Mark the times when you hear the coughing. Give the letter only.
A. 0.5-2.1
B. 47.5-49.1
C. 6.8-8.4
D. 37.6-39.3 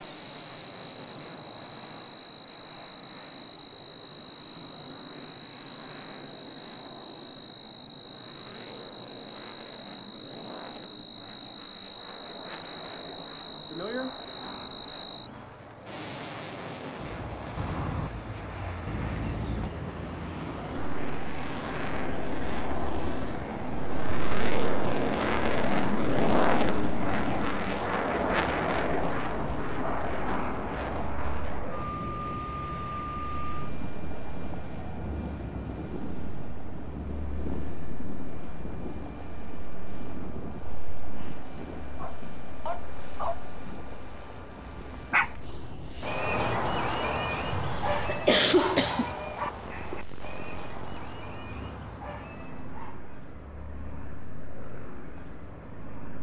B.